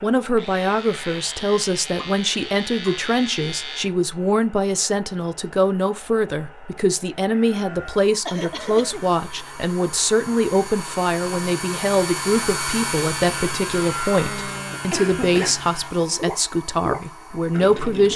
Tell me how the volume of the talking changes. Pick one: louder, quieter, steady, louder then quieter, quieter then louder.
steady.